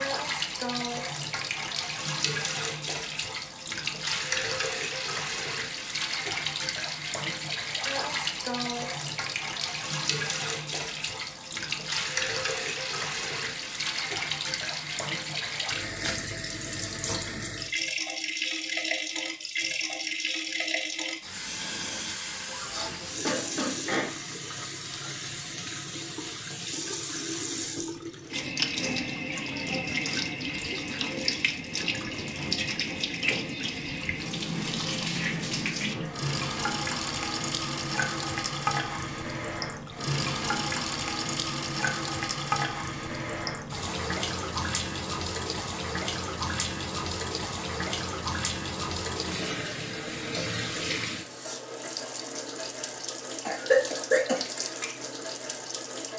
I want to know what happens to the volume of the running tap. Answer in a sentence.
The volume of the running tap stays about the same.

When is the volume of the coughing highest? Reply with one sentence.
The loudest moment of the coughing is at 54 seconds.